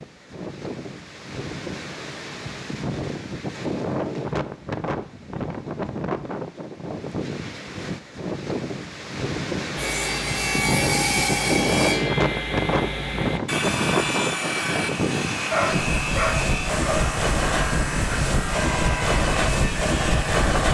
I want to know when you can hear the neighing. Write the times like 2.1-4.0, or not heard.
not heard.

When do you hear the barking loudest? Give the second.
16 s.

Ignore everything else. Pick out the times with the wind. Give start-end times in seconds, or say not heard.
0.0-20.6.